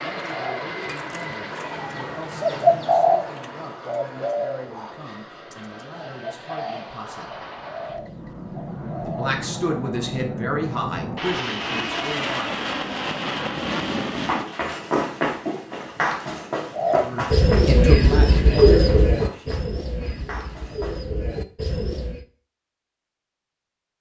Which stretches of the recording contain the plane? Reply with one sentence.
You can hear the plane from 0.0 to 14.4 s.